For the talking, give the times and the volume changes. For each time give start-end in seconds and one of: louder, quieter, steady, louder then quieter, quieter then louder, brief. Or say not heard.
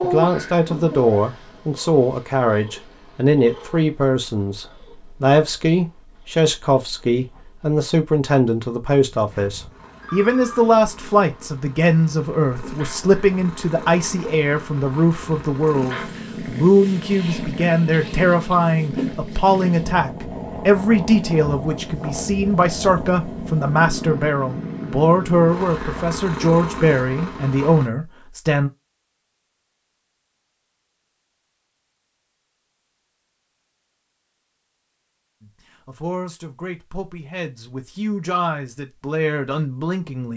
0.0-28.7 steady
35.4-40.3 louder.